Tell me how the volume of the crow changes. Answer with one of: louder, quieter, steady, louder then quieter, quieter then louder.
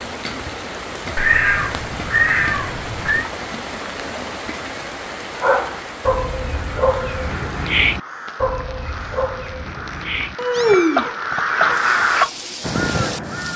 louder.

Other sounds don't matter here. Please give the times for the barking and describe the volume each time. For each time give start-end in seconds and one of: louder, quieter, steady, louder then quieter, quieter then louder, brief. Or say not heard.
5.3-12.3 quieter then louder.